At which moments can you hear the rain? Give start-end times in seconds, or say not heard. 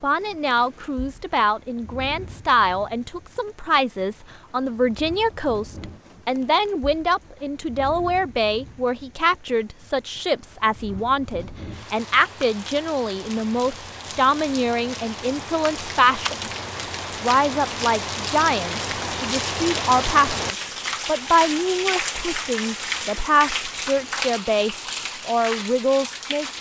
0.0-26.5.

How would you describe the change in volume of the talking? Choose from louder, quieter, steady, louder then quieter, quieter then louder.
steady.